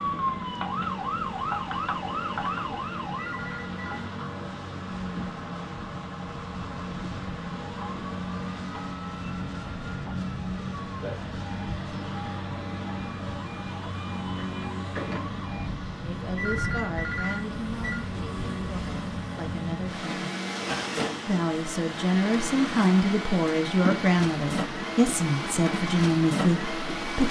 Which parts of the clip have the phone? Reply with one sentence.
The phone can be heard from 3.1 to 4.1 s and from 16.4 to 18.1 s.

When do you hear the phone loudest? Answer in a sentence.
The loudest moment of the phone is at 17 seconds.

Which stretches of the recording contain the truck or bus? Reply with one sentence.
You can hear the truck or bus from 0.0 to 27.2 s.